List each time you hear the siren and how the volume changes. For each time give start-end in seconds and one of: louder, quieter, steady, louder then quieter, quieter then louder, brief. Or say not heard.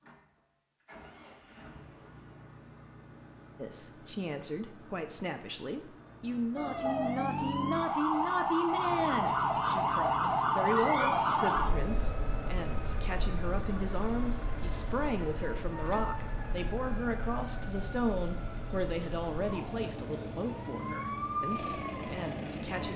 6.5-22.9 quieter then louder.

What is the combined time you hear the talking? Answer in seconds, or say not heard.
19 s.